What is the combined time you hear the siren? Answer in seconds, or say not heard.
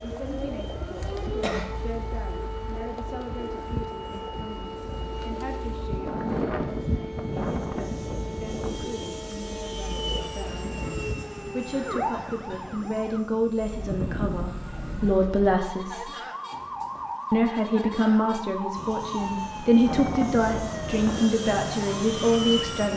23 s.